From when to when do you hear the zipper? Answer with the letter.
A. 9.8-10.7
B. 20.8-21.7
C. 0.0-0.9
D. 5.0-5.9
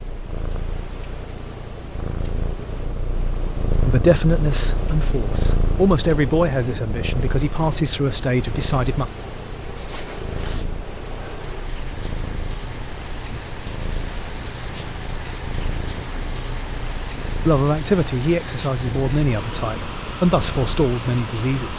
A.